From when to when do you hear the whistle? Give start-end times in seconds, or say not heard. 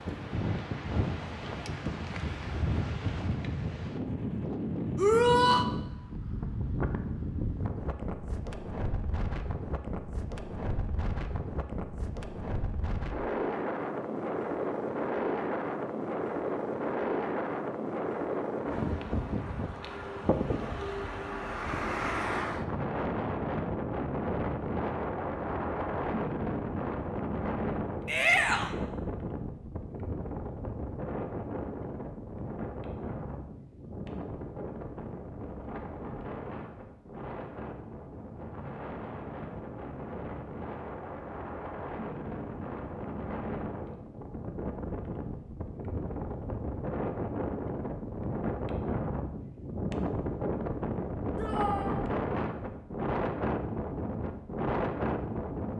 not heard.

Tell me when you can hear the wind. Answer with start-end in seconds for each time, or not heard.
0.0-55.7.